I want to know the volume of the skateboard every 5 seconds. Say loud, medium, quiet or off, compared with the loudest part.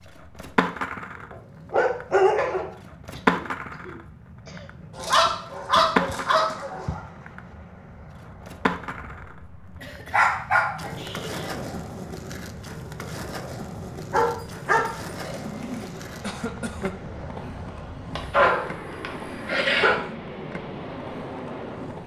loud, loud, medium, quiet, quiet.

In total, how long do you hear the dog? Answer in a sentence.
You can hear the dog for 8 seconds altogether.